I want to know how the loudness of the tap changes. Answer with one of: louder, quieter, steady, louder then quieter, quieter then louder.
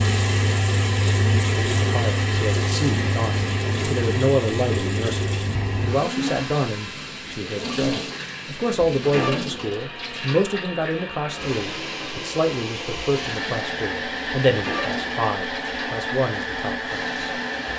quieter.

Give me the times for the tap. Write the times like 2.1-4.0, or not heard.
0.0-17.7.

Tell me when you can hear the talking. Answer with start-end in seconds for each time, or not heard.
1.8-17.1.